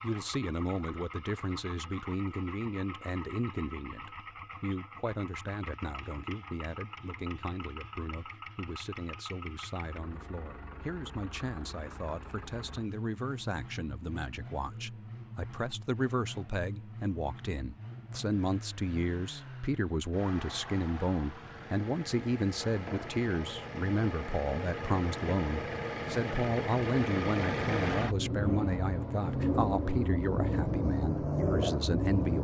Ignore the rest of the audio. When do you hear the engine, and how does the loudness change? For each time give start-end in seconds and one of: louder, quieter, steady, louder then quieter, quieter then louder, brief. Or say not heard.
0.0-32.3 louder.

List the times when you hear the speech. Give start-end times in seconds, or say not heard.
0.0-32.3.